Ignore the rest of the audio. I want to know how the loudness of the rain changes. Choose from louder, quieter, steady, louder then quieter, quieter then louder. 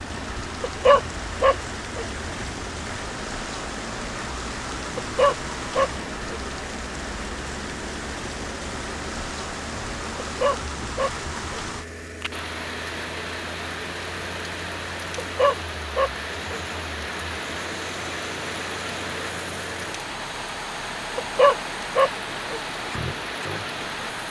steady.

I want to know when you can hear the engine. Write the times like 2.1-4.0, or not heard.
0.0-24.2.